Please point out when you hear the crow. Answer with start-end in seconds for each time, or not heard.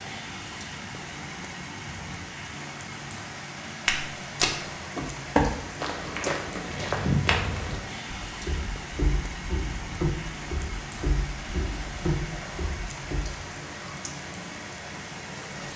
not heard.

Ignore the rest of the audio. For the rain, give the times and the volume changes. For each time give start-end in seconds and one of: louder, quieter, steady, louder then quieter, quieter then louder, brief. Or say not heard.
0.0-15.7 steady.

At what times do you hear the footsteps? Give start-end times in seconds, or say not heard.
3.9-13.3.